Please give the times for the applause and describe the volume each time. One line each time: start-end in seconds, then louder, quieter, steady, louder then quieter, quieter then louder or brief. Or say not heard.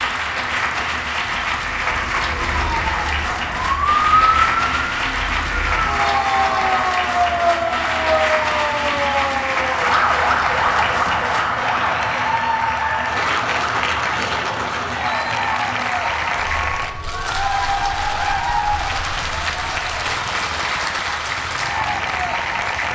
0.0-22.9 steady.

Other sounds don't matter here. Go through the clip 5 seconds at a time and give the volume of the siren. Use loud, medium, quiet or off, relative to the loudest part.
loud, loud, loud, medium, off.